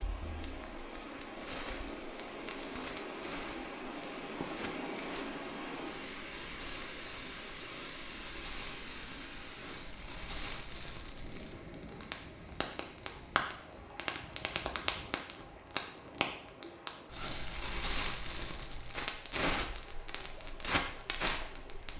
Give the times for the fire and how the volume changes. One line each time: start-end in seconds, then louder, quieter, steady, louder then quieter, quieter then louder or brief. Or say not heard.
0.0-21.9 louder.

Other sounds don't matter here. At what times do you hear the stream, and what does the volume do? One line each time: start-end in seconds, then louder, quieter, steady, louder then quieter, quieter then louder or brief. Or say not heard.
0.0-21.9 quieter.